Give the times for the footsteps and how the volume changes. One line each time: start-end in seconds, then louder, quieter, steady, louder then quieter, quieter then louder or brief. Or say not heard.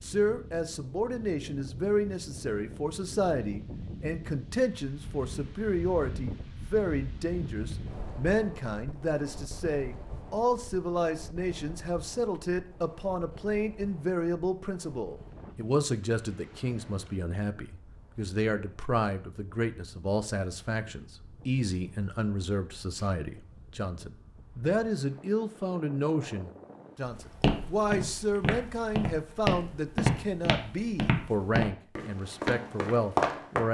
27.1-33.6 steady.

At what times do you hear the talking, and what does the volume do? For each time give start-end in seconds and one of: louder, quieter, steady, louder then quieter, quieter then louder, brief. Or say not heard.
0.0-33.6 steady.